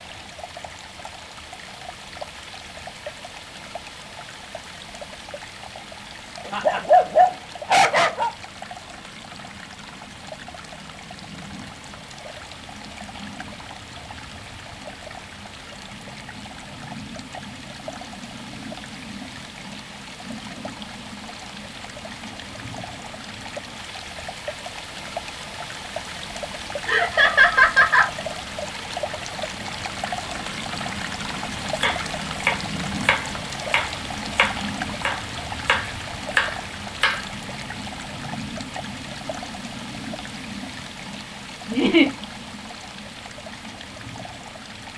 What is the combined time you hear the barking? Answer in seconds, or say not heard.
2 s.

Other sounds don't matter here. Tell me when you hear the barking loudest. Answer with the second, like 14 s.
7 s.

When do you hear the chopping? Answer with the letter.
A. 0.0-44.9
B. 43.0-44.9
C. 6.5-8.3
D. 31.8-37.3
D.